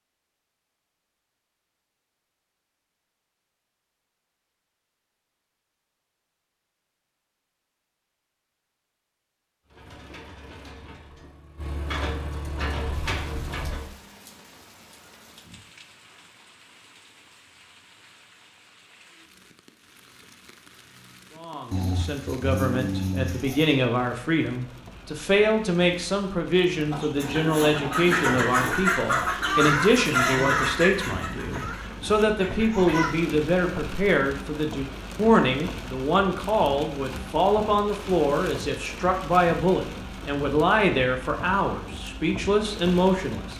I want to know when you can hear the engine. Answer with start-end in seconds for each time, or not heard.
9.7-13.9.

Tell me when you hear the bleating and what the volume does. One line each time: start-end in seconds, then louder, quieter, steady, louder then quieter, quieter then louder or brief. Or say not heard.
not heard.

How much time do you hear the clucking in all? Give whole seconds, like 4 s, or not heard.
6 s.